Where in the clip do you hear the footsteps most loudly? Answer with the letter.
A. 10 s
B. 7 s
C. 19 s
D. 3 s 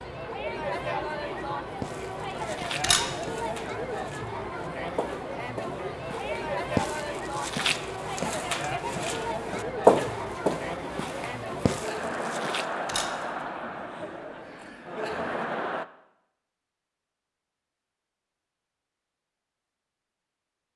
A.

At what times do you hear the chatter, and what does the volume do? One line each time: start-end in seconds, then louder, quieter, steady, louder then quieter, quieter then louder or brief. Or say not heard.
0.0-15.8 steady.